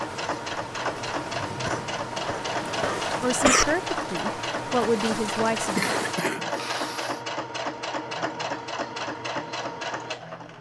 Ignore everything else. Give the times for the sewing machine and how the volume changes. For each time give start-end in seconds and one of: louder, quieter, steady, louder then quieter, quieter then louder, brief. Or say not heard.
0.0-10.5 steady.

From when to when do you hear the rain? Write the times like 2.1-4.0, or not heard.
0.0-6.2.